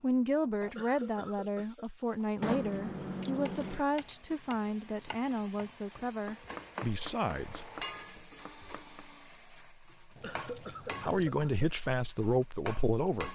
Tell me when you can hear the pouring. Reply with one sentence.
You can hear the pouring from 2.4 to 3.9 s and from 10.2 to 11.3 s.